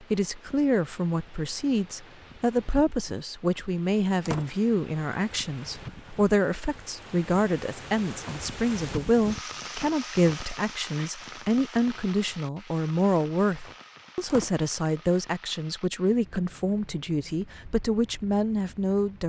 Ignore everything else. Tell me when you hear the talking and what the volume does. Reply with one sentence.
The talking can be heard from 0.1 to 19.2 s, at a steady volume.